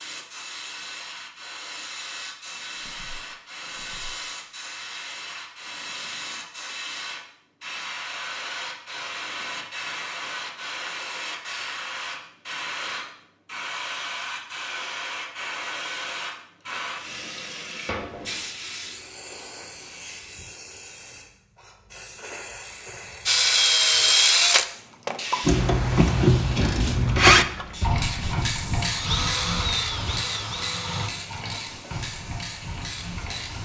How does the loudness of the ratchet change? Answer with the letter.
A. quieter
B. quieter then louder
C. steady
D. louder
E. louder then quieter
A.